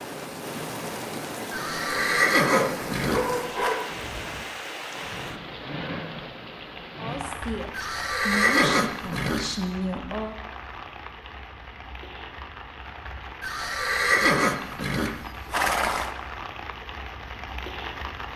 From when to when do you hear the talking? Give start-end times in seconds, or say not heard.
7.0-10.3.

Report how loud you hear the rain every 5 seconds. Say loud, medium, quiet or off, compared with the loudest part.
loud, loud, medium, loud.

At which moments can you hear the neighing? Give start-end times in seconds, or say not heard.
1.5-3.8, 7.7-9.6, 13.4-16.1.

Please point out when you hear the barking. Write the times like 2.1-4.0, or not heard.
2.4-3.9.